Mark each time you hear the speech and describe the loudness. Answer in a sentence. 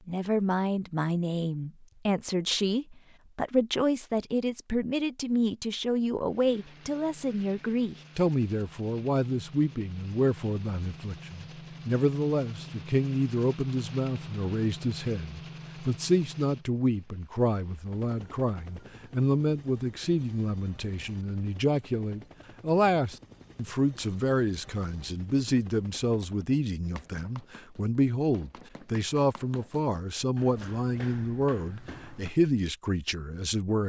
You can hear the speech from 0.1 to 33.8 s, at a steady volume.